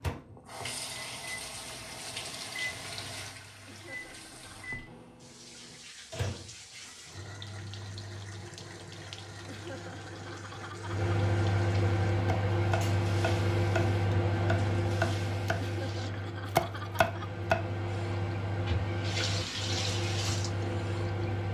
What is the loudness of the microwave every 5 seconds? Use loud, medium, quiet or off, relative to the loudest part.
quiet, quiet, loud, medium, loud.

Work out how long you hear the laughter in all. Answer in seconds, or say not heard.
4 s.